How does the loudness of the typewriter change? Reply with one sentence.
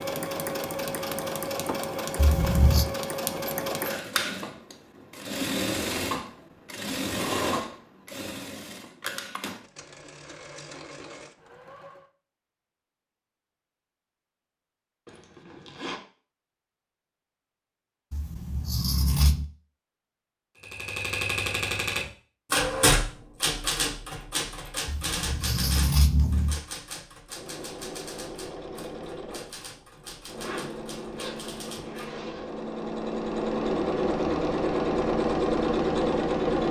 The loudness of the typewriter goes down.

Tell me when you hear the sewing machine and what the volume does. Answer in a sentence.
The sewing machine can be heard from 0.0 to 12.1 s, getting quieter; and from 27.2 to 36.6 s, getting louder.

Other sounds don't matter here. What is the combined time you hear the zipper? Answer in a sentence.
You can hear the zipper for 3 seconds altogether.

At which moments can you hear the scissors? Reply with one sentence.
You can hear the scissors from 2.1 to 2.9 s, from 18.1 to 19.4 s and from 24.9 to 26.6 s.